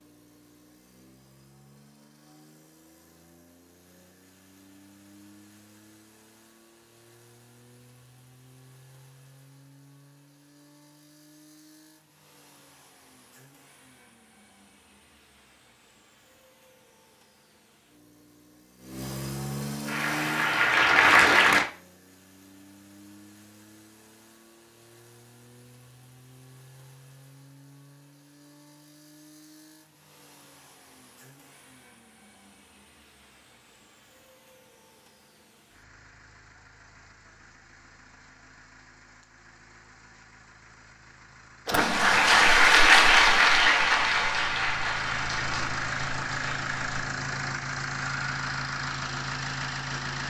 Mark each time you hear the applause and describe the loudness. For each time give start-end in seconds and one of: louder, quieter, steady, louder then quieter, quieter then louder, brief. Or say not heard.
19.9-21.6 brief
41.6-47.1 quieter.